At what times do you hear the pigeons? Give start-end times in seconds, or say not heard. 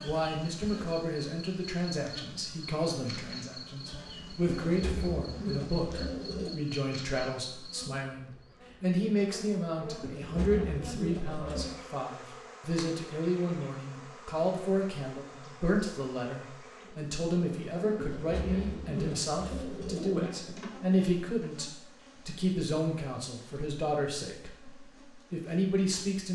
4.5-6.6, 10.0-11.8, 17.9-20.4.